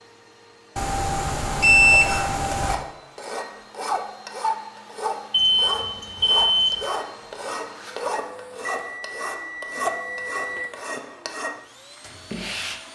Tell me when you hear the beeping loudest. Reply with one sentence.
The volume of the beeping peaks at 2 seconds.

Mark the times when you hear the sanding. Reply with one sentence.
The sanding can be heard from 1.9 to 12.8 s.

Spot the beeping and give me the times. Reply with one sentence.
You can hear the beeping from 0.8 to 2.8 s, from 5.3 to 6.8 s and from 8.8 to 10.7 s.